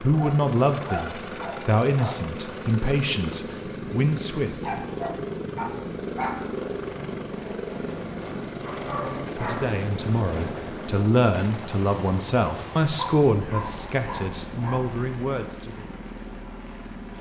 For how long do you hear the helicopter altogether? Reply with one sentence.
You can hear the helicopter for 17 seconds altogether.